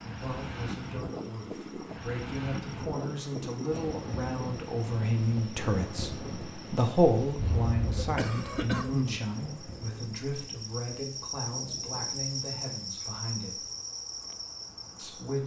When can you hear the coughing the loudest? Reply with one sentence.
The loudest moment of the coughing is at 9 seconds.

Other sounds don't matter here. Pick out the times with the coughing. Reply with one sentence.
You can hear the coughing from 7.3 to 9.2 s.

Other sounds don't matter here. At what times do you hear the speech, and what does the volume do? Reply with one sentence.
The speech can be heard from 0.0 to 13.6 s, getting louder then quieter; and briefly from 14.9 to 15.4 s.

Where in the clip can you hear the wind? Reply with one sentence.
You can hear the wind from 0.0 to 15.4 s.